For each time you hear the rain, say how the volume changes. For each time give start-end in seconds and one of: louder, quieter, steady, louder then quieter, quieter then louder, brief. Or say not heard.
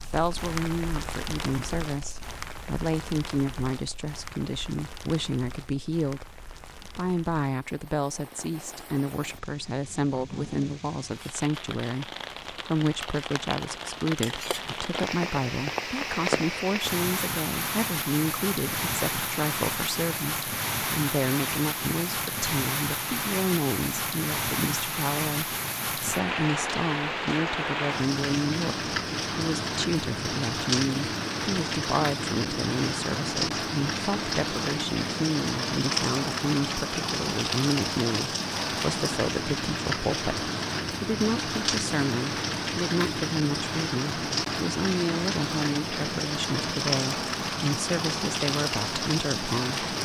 0.0-50.0 louder.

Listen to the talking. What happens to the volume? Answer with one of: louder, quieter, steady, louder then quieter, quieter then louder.
steady.